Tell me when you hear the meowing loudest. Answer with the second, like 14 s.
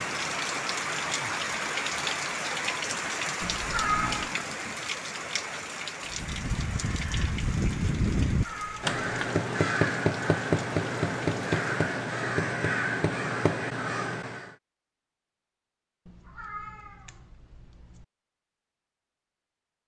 4 s.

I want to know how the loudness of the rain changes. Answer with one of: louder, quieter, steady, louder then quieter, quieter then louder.
quieter.